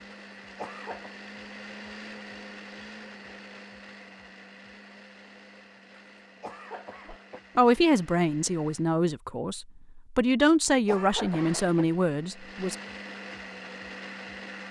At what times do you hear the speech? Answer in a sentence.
You can hear the speech from 7.1 to 12.8 s.